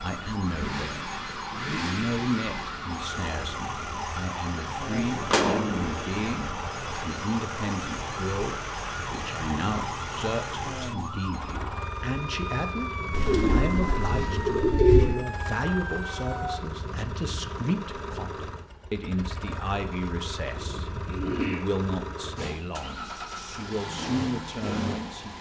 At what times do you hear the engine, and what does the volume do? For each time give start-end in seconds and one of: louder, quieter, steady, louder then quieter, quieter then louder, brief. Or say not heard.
0.0-25.3 steady.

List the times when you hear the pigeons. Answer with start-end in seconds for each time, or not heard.
4.9-6.2, 13.1-15.2, 20.5-21.6.